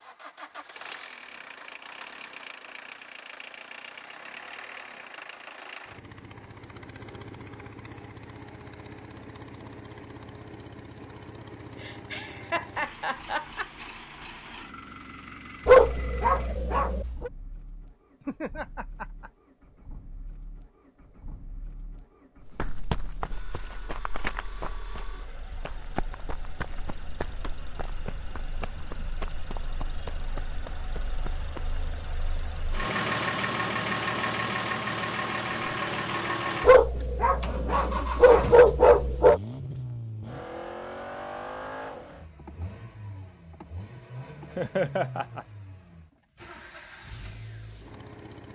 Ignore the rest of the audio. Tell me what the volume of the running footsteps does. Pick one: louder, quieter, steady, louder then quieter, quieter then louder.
quieter.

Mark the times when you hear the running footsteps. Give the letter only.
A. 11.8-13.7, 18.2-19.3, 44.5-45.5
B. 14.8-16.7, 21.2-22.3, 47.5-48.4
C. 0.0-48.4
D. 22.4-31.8
D.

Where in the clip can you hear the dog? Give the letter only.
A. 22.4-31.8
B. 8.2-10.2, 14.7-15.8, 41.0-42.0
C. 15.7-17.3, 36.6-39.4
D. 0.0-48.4
C.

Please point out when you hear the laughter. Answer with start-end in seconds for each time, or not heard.
11.8-13.7, 18.2-19.3, 44.5-45.5.